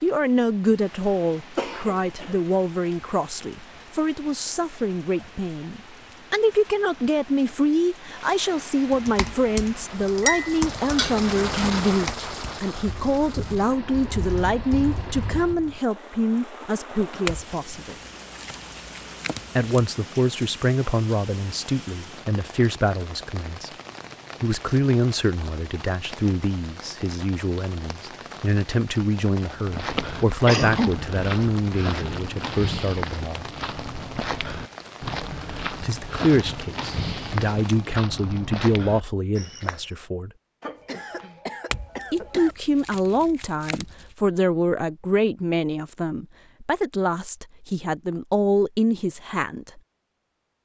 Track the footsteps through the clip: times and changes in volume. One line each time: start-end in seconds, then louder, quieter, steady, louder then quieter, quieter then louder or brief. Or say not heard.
29.6-39.9 steady.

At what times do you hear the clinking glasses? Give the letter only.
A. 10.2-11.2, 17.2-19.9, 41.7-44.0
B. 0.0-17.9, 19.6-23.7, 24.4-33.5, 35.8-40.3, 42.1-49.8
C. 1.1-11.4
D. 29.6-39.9
A.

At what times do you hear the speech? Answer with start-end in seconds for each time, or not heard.
0.0-17.9, 19.6-23.7, 24.4-33.5, 35.8-40.3, 42.1-49.8.